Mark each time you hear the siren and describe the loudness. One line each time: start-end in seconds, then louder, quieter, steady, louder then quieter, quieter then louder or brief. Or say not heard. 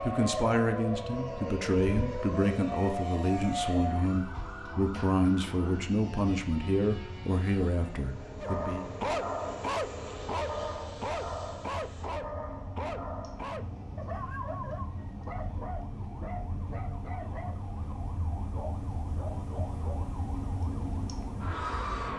0.0-22.1 quieter then louder.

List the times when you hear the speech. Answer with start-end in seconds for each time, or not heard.
0.0-8.8.